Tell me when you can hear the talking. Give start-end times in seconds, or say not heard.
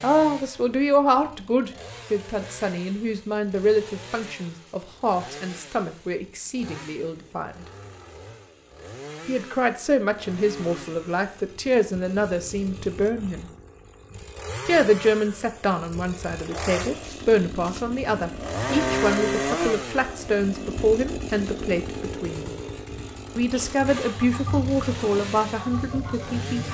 0.0-7.7, 9.2-13.5, 14.7-22.6, 23.4-26.6.